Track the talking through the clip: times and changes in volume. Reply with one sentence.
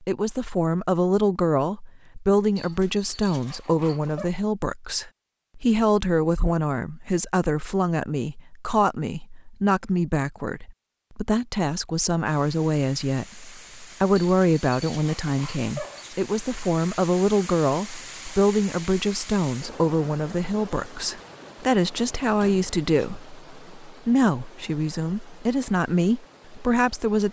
The talking can be heard from 0.0 to 27.2 s, at a steady volume.